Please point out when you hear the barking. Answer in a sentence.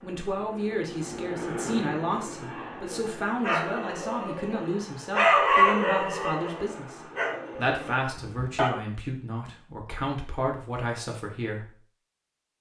You can hear the barking from 2.4 to 8.8 s.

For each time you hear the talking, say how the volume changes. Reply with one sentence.
The talking can be heard from 0.0 to 11.8 s, at a steady volume.